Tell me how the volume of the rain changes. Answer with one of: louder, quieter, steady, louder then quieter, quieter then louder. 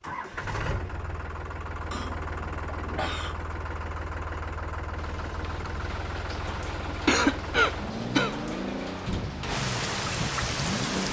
louder.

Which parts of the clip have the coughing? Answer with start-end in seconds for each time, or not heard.
1.9-3.4, 6.8-8.3.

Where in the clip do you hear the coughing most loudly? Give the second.
7 s.